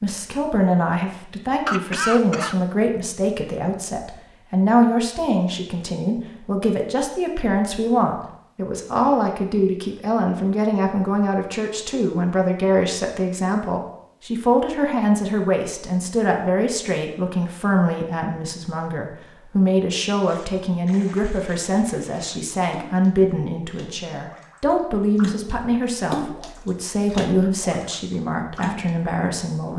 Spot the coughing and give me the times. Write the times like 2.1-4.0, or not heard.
1.6-2.5.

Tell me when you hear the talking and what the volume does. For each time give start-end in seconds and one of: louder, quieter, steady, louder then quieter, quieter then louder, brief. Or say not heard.
0.0-29.7 steady.